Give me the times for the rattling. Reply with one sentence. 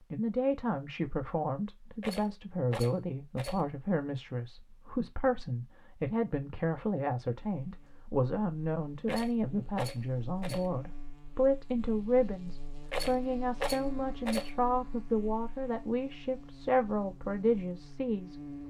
The rattling can be heard from 2.0 to 3.6 s, from 9.1 to 10.7 s and from 12.8 to 14.5 s.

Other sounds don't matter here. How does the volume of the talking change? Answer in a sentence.
The loudness of the talking stays about the same.